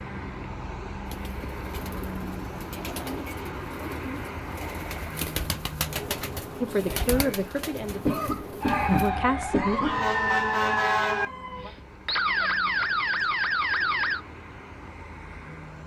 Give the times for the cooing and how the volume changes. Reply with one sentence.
You can hear the cooing from 1.1 to 9.1 s, getting louder then quieter.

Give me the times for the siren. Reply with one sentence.
The siren can be heard from 8.6 to 14.2 s.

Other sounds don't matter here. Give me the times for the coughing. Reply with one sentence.
You can hear the coughing from 8.1 to 10.0 s.